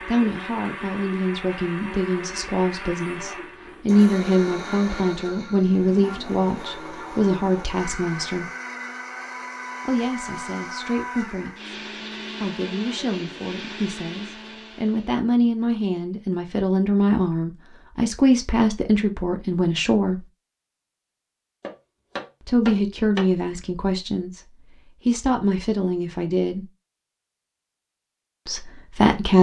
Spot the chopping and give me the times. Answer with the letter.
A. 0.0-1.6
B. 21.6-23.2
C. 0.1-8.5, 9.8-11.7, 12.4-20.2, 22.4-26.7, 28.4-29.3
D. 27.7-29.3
B.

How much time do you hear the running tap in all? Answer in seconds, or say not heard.
not heard.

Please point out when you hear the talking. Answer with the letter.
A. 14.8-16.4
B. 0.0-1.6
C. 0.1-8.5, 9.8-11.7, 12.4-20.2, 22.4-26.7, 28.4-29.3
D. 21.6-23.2
C.